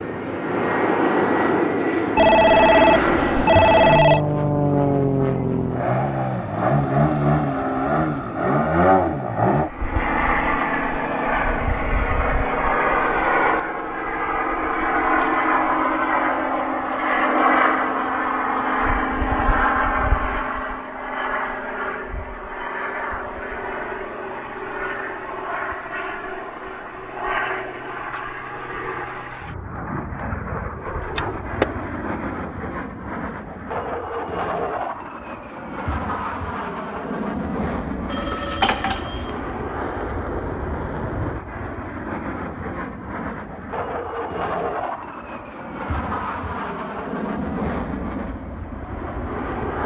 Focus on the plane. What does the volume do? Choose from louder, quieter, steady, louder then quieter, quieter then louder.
quieter.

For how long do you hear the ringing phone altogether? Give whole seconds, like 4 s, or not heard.
4 s.